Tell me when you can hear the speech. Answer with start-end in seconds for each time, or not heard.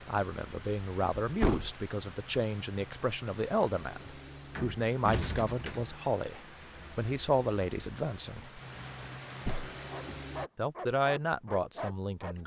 0.1-8.6, 10.6-12.4.